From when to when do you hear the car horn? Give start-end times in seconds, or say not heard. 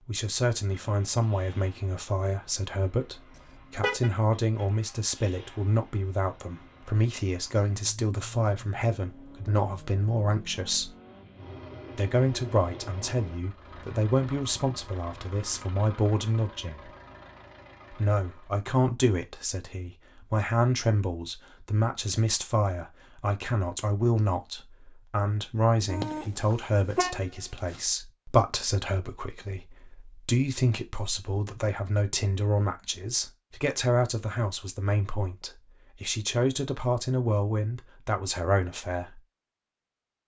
3.4-4.1, 25.9-27.8.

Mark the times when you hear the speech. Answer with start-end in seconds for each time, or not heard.
0.1-10.9, 11.9-16.9, 17.9-39.2.